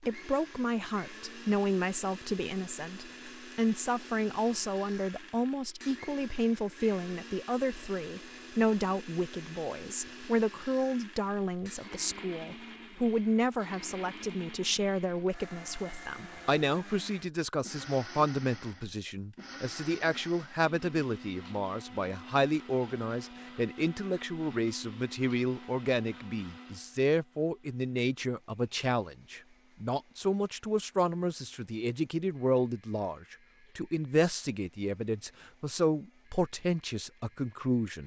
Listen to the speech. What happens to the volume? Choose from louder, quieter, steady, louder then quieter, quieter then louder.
steady.